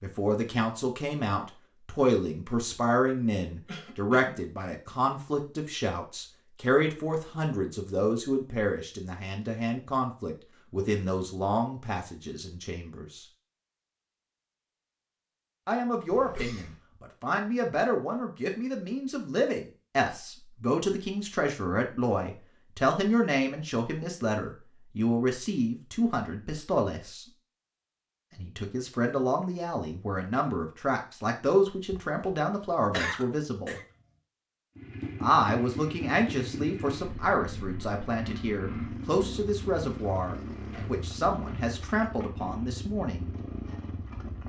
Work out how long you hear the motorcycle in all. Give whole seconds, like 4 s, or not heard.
10 s.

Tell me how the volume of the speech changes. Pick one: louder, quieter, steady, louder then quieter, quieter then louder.
steady.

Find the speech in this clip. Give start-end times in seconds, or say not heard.
0.0-13.2, 15.7-27.2, 28.4-33.8, 35.2-43.4.